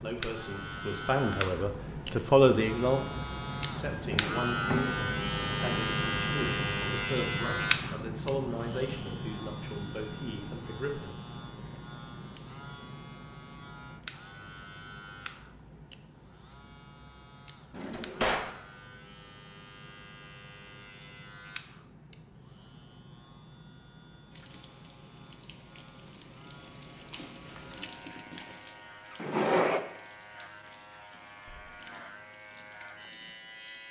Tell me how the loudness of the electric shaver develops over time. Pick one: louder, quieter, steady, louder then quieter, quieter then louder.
quieter.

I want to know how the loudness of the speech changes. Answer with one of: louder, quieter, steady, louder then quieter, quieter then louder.
quieter.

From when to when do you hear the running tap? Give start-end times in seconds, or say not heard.
24.3-33.8.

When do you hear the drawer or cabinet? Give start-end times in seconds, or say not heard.
4.1-5.0, 17.7-18.5, 29.2-29.8.